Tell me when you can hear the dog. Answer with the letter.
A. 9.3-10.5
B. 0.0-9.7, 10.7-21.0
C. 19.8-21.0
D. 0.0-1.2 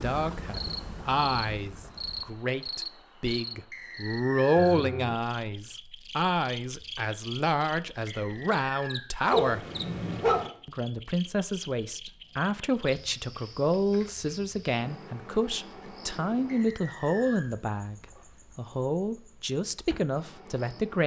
A.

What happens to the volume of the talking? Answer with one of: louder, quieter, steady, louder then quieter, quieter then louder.
steady.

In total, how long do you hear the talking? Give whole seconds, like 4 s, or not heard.
20 s.